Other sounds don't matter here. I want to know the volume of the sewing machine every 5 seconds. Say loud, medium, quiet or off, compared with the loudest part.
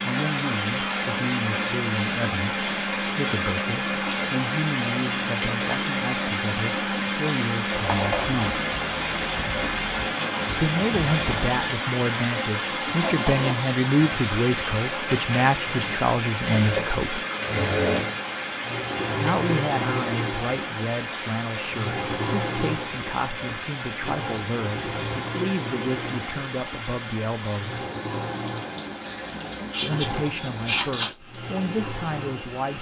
medium, medium, loud, loud, loud, medium, medium.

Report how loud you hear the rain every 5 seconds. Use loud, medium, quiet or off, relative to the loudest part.
loud, loud, loud, loud, medium, medium, medium.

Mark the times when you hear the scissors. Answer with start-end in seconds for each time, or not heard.
7.8-8.6, 29.1-31.1.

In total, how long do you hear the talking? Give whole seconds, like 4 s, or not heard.
27 s.